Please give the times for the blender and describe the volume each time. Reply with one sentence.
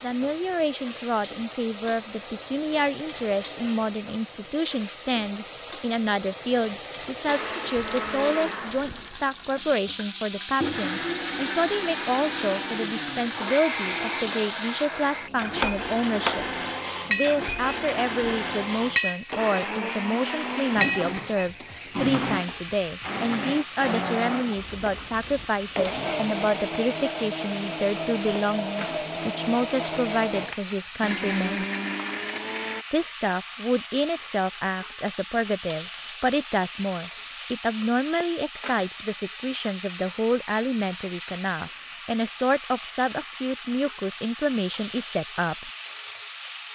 The blender can be heard from 7.2 to 32.9 s, at a steady volume.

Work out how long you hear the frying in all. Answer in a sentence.
The frying can be heard for 47 seconds in total.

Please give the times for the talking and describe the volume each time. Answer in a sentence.
You can hear the talking from 0.0 to 16.4 s, at a steady volume; from 17.1 to 31.6 s, at a steady volume; and from 32.9 to 45.7 s, at a steady volume.